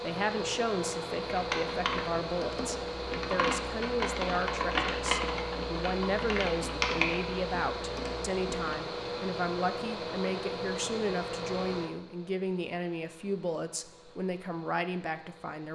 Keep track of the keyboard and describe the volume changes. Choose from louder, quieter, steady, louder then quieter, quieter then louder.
louder then quieter.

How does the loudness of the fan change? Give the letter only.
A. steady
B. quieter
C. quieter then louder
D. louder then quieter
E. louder
B.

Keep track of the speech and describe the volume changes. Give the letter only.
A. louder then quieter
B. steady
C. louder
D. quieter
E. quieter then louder
B.